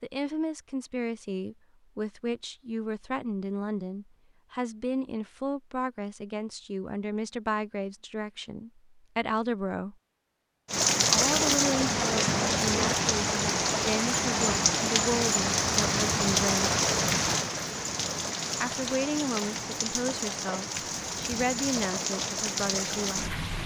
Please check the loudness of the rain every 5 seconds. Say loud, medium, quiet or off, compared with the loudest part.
off, off, loud, loud, medium.